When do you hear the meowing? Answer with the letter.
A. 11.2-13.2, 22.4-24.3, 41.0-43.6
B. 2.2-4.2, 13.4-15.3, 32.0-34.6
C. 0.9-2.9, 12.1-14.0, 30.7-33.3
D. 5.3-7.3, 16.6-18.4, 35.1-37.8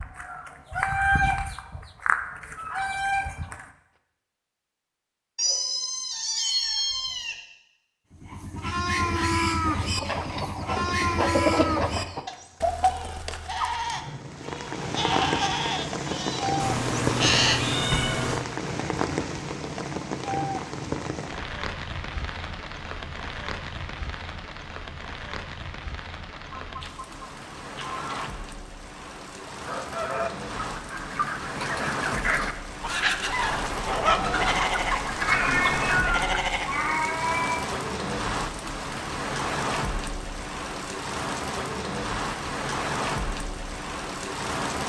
D.